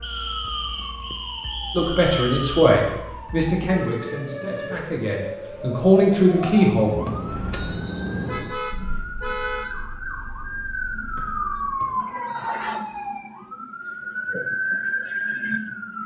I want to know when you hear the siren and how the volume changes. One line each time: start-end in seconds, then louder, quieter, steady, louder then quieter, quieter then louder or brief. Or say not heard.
0.0-16.0 louder.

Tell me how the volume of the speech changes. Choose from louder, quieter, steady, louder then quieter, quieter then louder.
quieter then louder.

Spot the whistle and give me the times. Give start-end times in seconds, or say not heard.
0.0-2.5, 6.4-8.5, 11.8-12.6.